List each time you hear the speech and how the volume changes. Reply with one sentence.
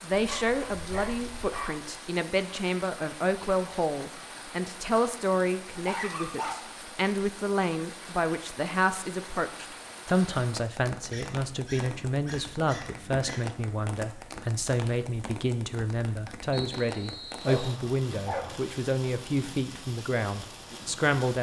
The speech can be heard from 0.0 to 21.3 s, at a steady volume.